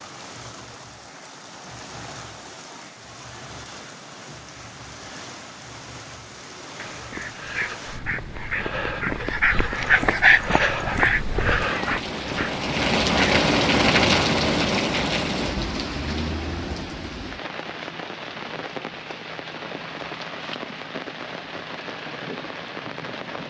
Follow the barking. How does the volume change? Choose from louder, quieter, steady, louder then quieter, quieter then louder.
louder then quieter.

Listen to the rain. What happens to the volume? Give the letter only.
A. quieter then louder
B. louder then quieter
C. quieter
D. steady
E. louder
B.